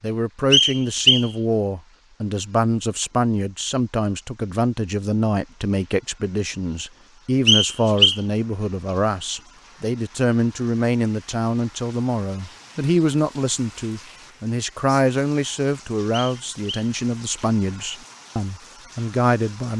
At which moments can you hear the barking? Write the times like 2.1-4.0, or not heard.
not heard.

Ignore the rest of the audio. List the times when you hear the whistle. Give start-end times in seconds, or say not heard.
0.5-1.3, 7.5-8.2, 16.1-16.9.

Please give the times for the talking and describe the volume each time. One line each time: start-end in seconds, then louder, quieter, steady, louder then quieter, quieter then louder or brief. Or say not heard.
0.0-19.7 steady.